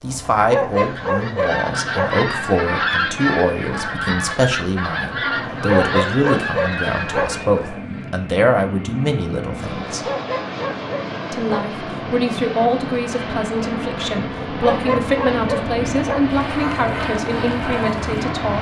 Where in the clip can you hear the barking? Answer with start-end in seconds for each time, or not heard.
0.5-2.1, 5.7-7.3, 10.0-11.7, 14.6-16.2.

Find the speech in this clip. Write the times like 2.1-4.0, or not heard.
0.0-10.0, 11.3-18.5.